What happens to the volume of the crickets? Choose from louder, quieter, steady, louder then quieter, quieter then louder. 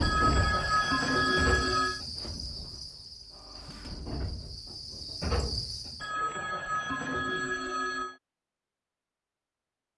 quieter then louder.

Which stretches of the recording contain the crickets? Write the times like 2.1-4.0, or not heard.
0.0-6.1.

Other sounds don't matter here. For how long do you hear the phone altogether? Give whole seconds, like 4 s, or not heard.
4 s.